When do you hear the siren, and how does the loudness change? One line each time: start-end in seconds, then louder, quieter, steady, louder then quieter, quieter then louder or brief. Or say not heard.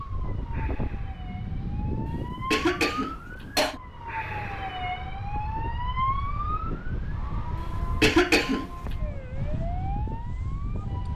0.0-11.1 louder then quieter.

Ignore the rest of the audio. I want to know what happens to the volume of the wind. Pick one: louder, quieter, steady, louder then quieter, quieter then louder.
quieter then louder.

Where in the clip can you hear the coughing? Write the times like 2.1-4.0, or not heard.
2.0-3.8, 8.0-8.7.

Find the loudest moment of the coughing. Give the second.
8 s.